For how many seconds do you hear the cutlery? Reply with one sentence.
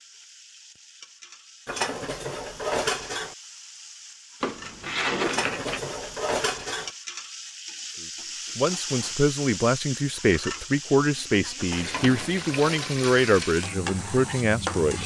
You can hear the cutlery for 5 seconds altogether.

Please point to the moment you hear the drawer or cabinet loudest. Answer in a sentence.
The volume of the drawer or cabinet peaks at 5 seconds.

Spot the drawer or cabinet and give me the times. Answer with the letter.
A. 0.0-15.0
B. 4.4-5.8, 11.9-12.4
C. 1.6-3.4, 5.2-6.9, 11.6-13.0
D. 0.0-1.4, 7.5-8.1
B.